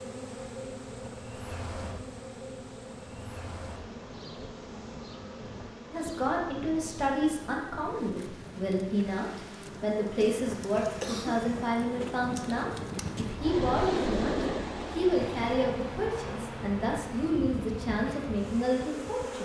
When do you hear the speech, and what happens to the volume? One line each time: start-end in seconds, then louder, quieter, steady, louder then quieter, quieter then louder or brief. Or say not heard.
5.9-19.4 steady.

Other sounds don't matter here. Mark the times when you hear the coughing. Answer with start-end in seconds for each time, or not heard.
10.1-11.4.